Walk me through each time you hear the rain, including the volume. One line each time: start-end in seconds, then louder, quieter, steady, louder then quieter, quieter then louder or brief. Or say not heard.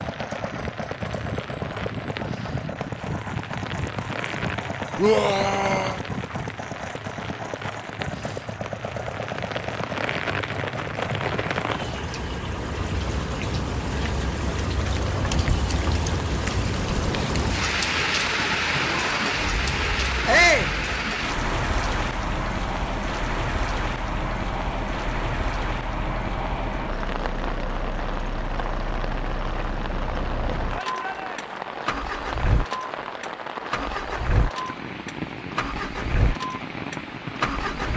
0.0-37.9 louder then quieter.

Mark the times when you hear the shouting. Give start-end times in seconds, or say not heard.
5.0-6.0, 20.2-20.7, 30.7-31.6.